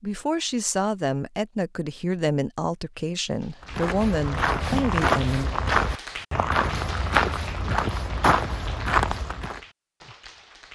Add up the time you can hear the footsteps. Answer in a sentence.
The footsteps can be heard for 6 seconds in total.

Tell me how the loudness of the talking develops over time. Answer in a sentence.
The loudness of the talking stays about the same.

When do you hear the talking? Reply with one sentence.
You can hear the talking from 0.0 to 5.5 s.